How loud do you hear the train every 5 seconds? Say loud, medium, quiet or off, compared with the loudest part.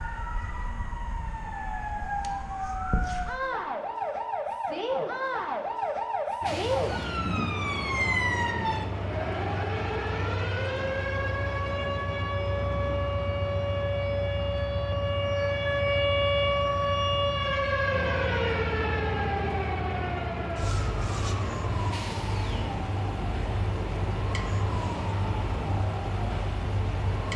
off, loud, loud, loud, loud, loud.